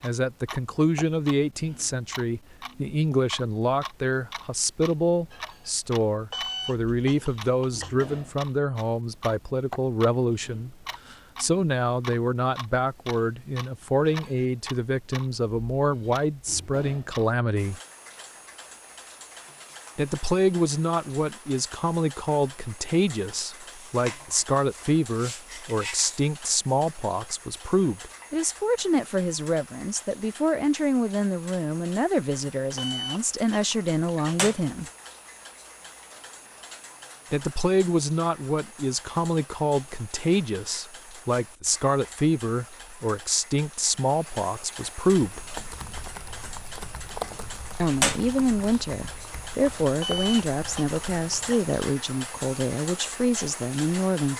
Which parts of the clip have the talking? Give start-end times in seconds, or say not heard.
0.0-17.8, 19.9-34.9, 37.3-45.4, 47.8-54.3.